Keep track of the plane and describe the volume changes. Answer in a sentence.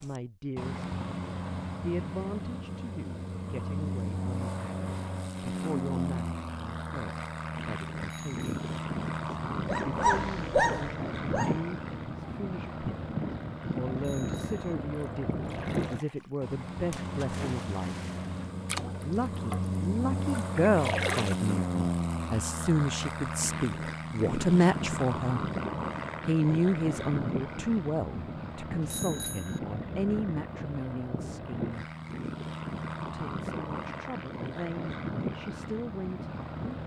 The loudness of the plane stays about the same.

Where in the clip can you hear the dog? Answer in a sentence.
You can hear the dog from 9.6 to 11.6 s.